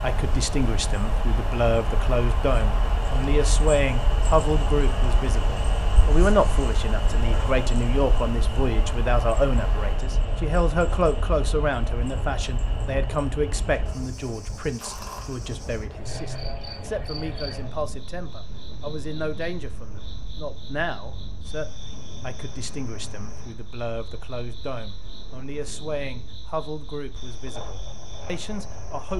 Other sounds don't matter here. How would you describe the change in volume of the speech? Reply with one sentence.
The loudness of the speech goes down.